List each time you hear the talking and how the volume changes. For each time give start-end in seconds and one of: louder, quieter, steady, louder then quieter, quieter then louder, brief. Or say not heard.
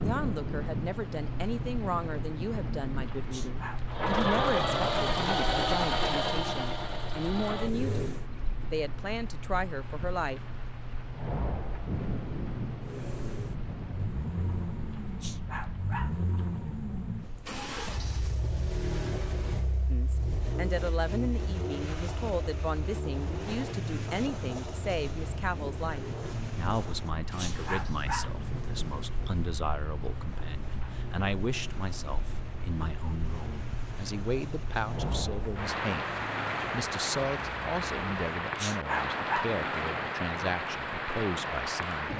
0.0-10.4 steady
19.9-42.1 steady.